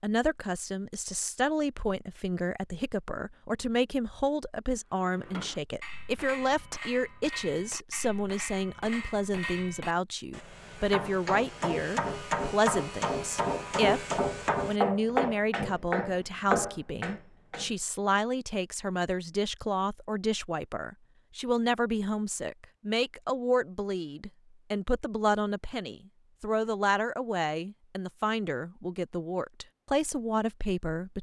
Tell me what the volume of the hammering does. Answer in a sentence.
The volume of the hammering goes up.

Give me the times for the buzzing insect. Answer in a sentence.
The buzzing insect can't be heard in this clip.